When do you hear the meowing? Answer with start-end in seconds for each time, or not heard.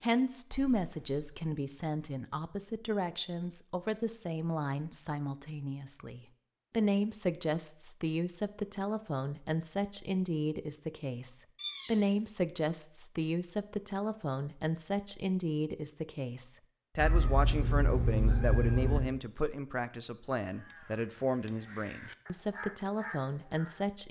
0.5-1.4, 11.6-12.1, 16.9-19.0.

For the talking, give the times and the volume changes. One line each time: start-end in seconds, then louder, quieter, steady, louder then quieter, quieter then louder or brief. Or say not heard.
0.0-24.0 steady.